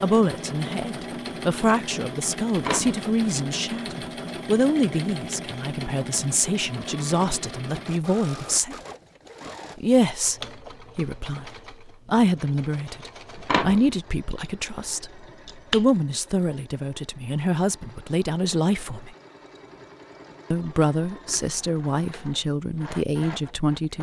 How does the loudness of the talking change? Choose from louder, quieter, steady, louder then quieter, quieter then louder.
steady.